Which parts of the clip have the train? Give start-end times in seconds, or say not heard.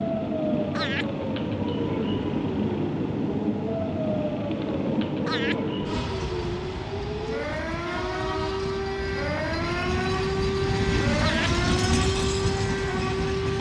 0.0-13.5.